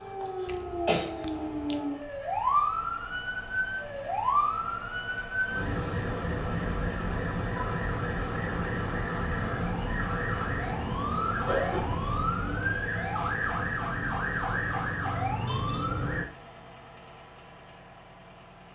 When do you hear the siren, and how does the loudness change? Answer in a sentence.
The siren can be heard from 0.0 to 16.2 s, at a steady volume.